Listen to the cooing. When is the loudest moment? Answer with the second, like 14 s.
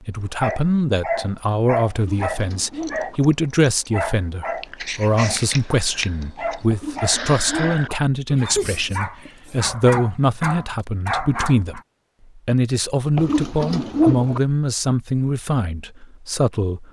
14 s.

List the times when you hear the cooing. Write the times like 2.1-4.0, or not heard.
1.9-3.2, 6.7-7.8, 13.2-14.4.